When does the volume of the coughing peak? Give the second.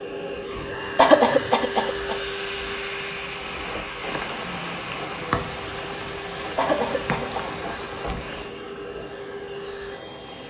1 s.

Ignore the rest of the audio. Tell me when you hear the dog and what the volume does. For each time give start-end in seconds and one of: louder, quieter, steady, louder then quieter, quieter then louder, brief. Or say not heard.
not heard.